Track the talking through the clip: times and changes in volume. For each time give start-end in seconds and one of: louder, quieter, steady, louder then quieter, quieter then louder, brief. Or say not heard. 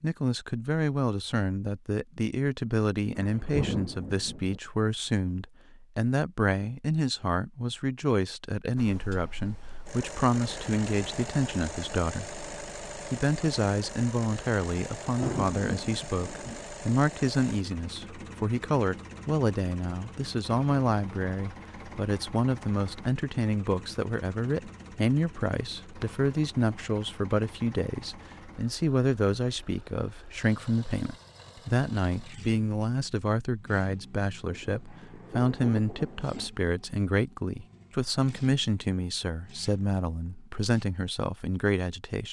0.0-42.2 steady.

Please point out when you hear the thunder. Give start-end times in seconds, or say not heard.
3.1-4.6, 15.1-16.6, 34.5-36.5.